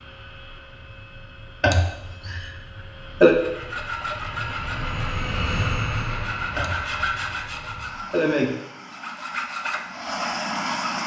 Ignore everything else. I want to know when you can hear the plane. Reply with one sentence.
You can hear the plane from 0.0 to 11.0 s.